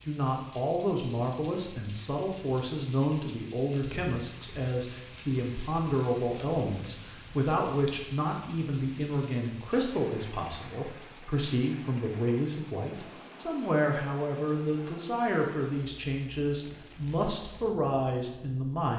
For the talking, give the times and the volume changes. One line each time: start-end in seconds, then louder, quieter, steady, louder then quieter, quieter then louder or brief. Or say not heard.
0.1-18.9 steady.